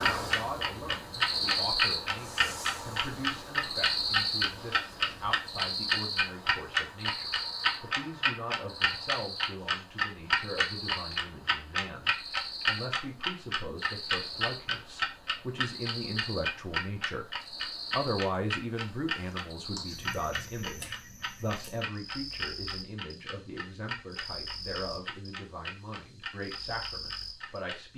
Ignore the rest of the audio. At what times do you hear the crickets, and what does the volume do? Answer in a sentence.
You can hear the crickets from 0.0 to 27.9 s, getting quieter.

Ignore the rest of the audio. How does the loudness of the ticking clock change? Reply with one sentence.
The loudness of the ticking clock goes down.